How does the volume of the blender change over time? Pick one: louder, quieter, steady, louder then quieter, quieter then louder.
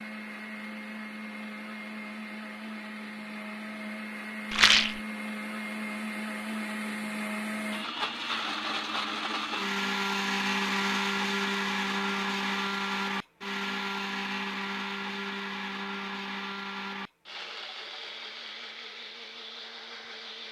louder then quieter.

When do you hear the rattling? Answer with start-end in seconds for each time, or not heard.
4.5-5.0.